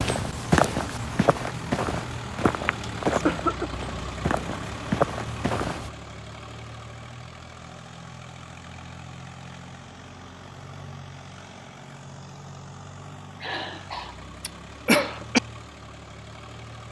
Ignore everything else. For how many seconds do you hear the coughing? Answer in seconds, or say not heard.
3 s.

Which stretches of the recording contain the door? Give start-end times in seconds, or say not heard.
not heard.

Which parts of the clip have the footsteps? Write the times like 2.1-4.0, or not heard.
0.0-5.9.